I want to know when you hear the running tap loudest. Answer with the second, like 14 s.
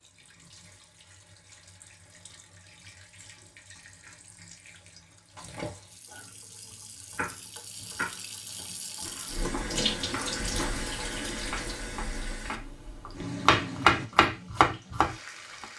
10 s.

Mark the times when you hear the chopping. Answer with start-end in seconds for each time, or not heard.
6.1-15.7.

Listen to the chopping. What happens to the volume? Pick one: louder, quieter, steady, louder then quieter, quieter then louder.
quieter then louder.